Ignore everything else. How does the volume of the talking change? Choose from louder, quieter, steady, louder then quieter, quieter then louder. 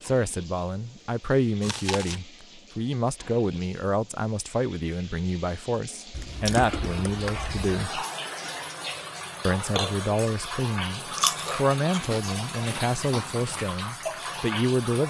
steady.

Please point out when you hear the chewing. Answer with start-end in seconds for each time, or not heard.
1.6-2.2, 6.1-7.7, 11.1-13.4.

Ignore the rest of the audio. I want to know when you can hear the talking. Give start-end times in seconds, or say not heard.
0.0-8.1, 9.4-15.0.